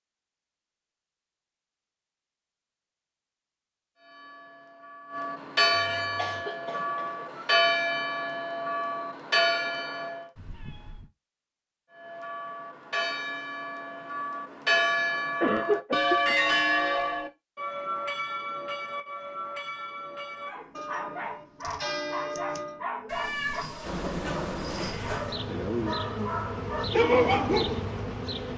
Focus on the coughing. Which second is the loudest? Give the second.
16 s.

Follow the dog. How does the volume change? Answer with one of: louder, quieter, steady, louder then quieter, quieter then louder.
steady.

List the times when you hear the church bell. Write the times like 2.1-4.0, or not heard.
4.0-10.3, 11.9-22.9.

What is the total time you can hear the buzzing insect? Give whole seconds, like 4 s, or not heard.
5 s.